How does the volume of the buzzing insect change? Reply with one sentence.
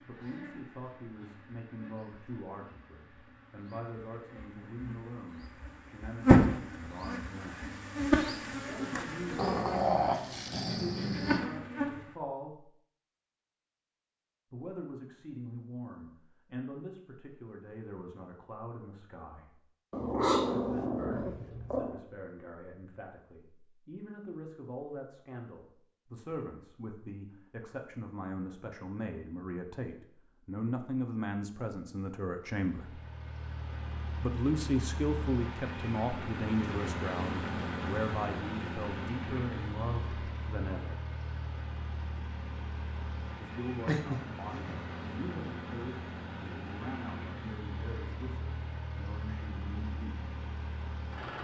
The loudness of the buzzing insect goes up, then down.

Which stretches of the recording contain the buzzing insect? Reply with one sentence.
You can hear the buzzing insect from 0.0 to 12.2 s.